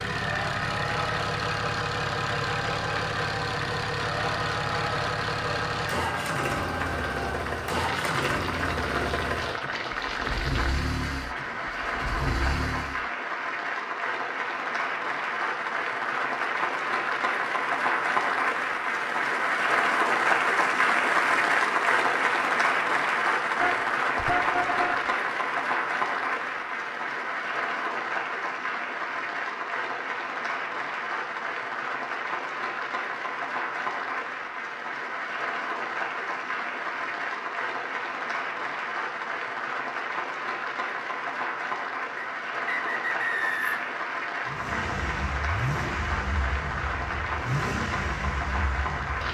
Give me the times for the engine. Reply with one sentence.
The engine can be heard from 0.0 to 13.1 s and from 44.5 to 49.2 s.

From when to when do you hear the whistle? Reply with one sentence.
You can hear the whistle from 42.1 to 43.9 s.